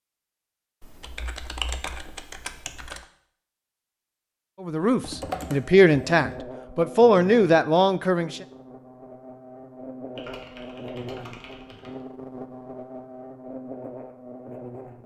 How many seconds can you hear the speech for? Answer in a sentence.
You can hear the speech for 4 seconds altogether.